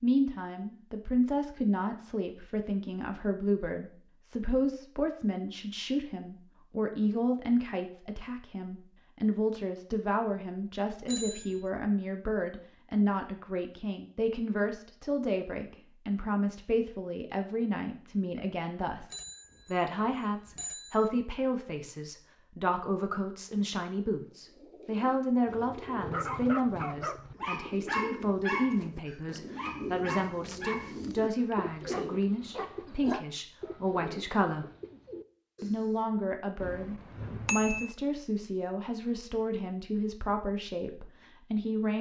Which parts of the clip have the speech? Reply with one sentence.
You can hear the speech from 0.0 to 34.6 s and from 35.6 to 41.9 s.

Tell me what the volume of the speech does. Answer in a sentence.
The volume of the speech stays about the same.